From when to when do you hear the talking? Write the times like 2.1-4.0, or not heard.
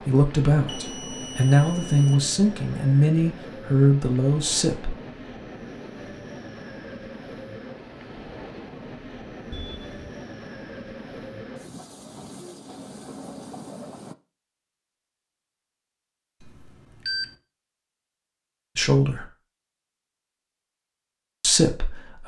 0.0-4.9, 18.8-19.2, 21.4-22.2.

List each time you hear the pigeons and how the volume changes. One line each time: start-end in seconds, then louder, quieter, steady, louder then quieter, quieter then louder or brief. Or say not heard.
not heard.